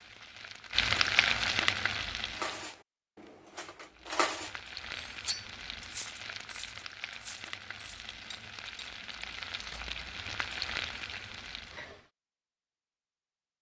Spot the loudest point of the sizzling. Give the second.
1 s.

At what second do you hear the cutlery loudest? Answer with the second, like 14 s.
4 s.